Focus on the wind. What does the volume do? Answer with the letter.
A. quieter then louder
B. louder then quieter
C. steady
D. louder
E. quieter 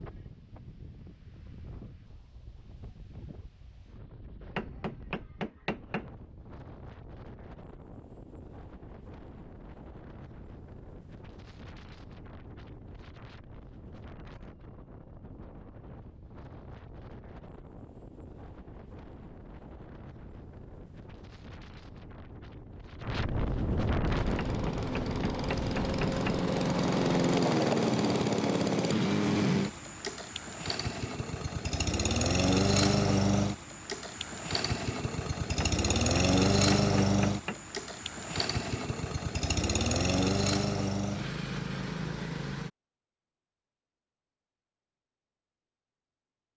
D.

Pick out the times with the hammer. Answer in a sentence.
The hammer can be heard from 4.5 to 6.1 s, from 24.4 to 26.4 s and from 35.6 to 37.6 s.